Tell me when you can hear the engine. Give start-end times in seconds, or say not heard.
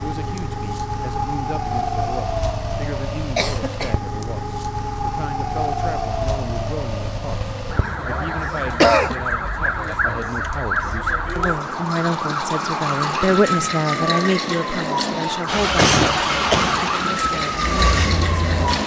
15.4-18.8.